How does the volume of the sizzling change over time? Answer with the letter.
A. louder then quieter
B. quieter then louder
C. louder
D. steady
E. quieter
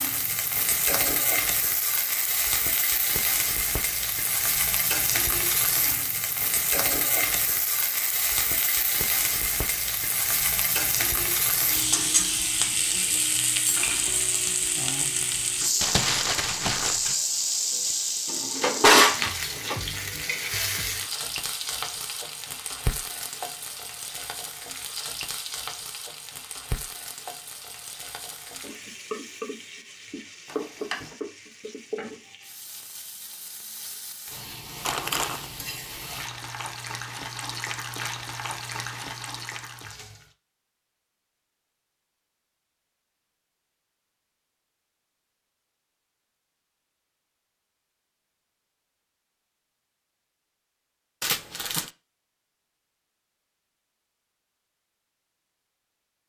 E.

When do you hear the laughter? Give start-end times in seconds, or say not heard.
not heard.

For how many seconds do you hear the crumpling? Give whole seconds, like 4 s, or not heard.
3 s.